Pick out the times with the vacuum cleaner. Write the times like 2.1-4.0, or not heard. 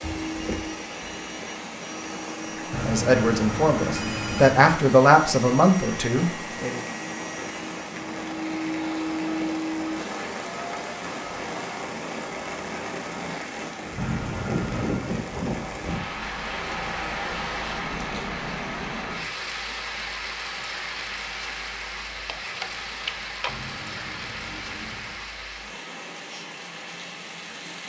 0.0-11.5.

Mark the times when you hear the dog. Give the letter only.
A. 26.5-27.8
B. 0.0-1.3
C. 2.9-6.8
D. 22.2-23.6
D.